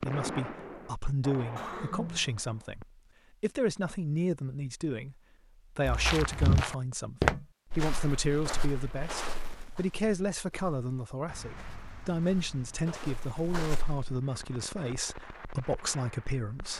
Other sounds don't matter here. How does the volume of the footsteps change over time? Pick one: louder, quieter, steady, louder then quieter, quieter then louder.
quieter then louder.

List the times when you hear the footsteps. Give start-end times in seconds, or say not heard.
5.8-14.2.